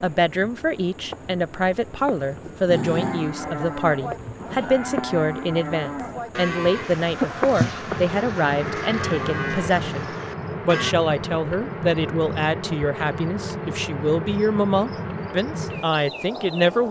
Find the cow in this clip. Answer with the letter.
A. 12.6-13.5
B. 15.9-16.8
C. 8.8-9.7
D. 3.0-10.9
D.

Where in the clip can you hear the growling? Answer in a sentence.
You can hear the growling from 2.4 to 3.3 s.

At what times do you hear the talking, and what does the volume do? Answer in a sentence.
You can hear the talking from 0.0 to 16.8 s, at a steady volume.